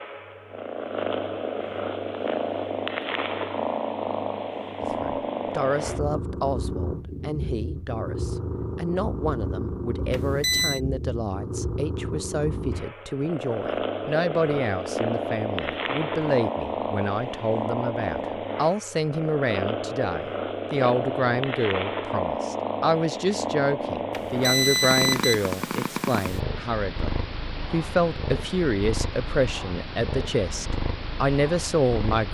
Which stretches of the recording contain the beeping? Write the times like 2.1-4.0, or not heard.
10.1-10.8, 24.1-25.4.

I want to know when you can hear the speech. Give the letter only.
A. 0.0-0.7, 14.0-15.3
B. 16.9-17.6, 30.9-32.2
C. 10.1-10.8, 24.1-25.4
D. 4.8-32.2
D.